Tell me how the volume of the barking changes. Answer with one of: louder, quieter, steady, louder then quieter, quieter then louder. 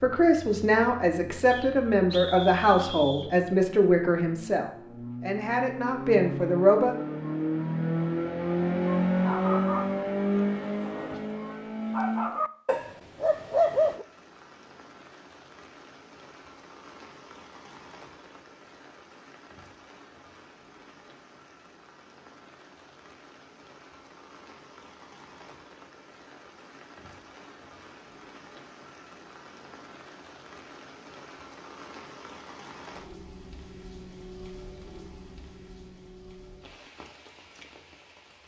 quieter then louder.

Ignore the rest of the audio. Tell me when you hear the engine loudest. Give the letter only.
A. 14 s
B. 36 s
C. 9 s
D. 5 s
C.